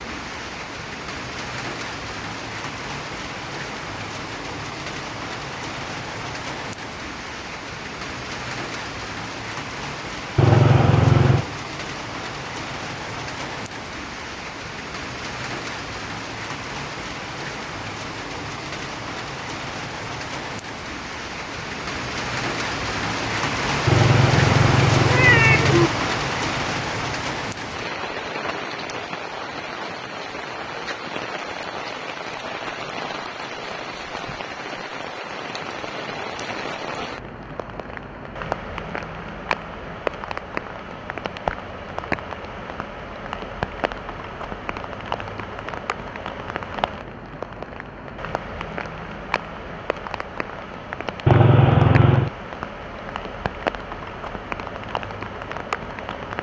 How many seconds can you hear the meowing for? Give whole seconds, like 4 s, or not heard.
4 s.